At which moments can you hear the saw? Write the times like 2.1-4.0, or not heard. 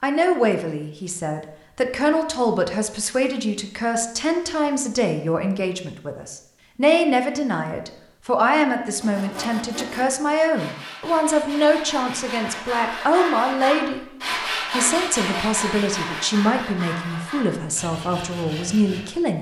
8.9-19.1.